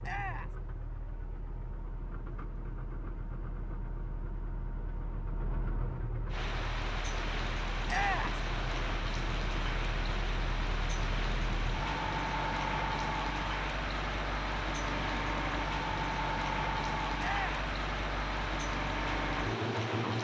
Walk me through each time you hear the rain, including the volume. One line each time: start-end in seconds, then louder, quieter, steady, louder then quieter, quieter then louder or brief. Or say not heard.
6.3-20.2 steady.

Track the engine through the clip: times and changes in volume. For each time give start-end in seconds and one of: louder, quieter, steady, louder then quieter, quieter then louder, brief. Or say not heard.
0.0-20.2 louder.